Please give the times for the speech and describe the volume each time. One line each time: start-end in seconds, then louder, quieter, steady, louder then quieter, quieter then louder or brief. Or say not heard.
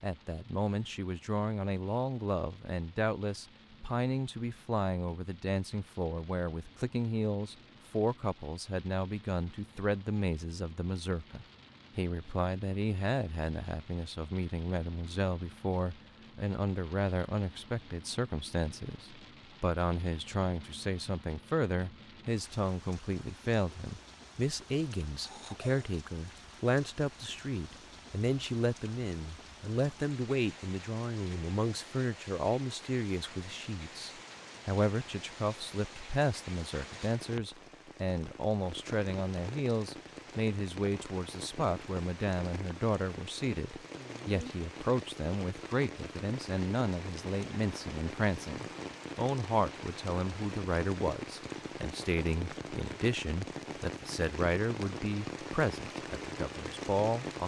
0.0-57.4 steady.